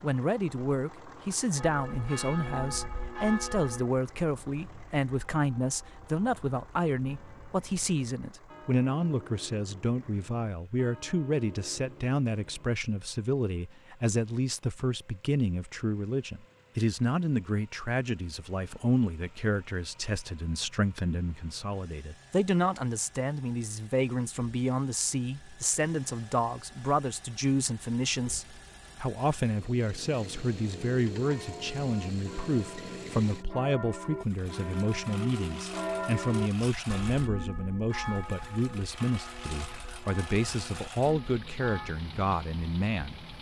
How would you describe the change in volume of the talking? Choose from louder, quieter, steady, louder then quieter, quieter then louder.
steady.